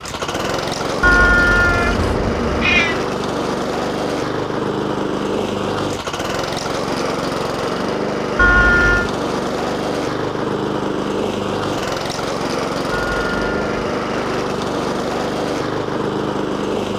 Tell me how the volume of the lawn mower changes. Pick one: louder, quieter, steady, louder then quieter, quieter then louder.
steady.